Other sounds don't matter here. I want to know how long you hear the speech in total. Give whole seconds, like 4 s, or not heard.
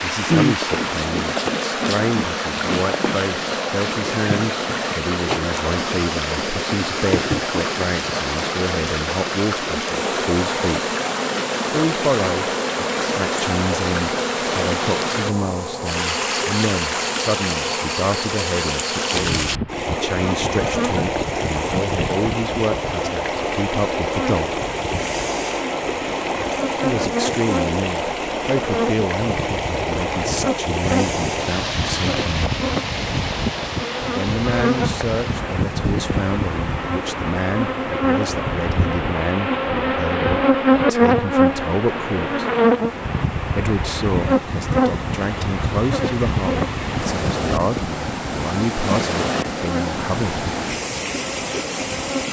45 s.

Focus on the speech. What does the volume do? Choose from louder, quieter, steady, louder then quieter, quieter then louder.
steady.